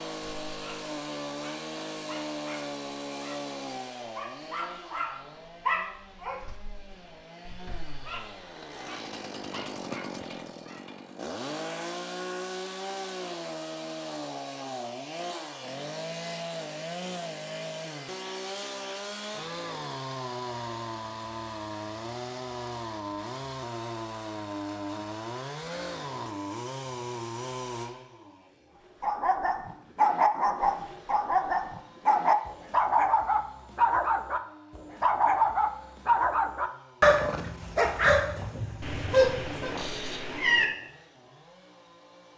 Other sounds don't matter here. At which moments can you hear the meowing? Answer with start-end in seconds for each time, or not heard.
38.8-40.6.